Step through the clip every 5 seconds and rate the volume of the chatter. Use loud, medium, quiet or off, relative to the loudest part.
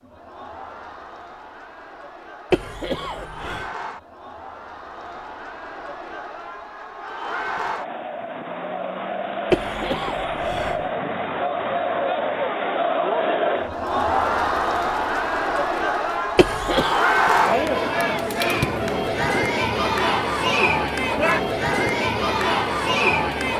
quiet, medium, loud, loud, loud.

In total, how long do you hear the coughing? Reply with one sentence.
You can hear the coughing for 3 seconds altogether.